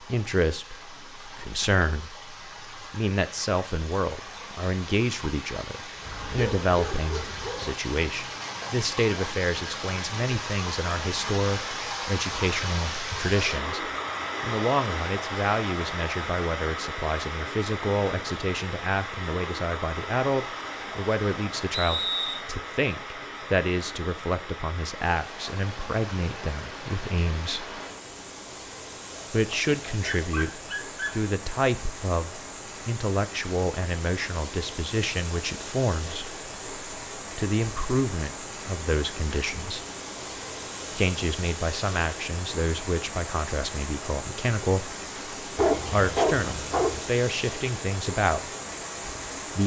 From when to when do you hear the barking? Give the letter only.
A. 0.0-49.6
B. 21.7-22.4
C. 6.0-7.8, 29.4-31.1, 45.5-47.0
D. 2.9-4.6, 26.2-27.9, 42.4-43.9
C.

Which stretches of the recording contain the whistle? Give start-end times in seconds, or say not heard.
21.7-22.4.